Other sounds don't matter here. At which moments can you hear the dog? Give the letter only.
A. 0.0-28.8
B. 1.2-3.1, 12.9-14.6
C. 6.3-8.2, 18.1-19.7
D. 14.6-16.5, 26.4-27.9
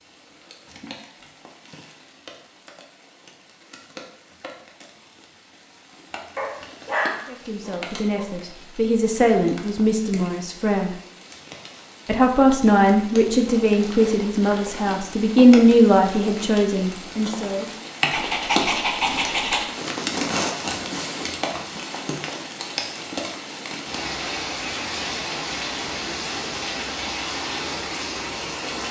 C.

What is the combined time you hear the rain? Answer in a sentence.
The rain can be heard for 29 seconds in total.